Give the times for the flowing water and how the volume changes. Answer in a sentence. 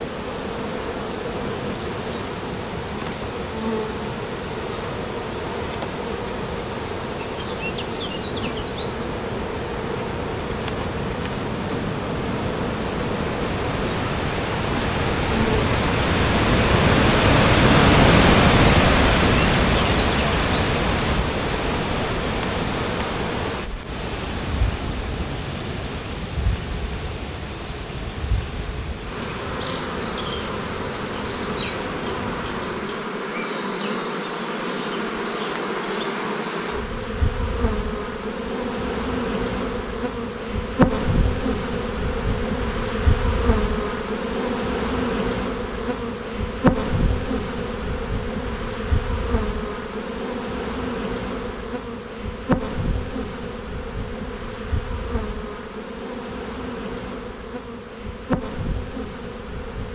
The flowing water can be heard from 0.0 to 32.9 s, getting louder then quieter.